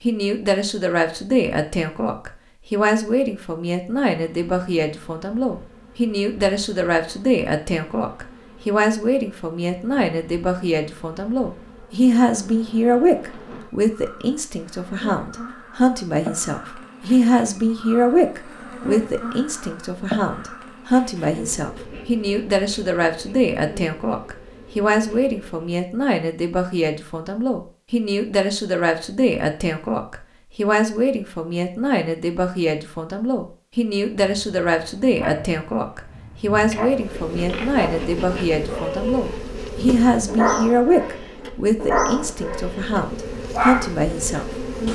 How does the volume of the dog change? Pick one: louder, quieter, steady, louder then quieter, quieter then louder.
louder.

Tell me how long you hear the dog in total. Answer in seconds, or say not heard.
10 s.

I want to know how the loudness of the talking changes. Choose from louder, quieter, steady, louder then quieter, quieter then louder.
steady.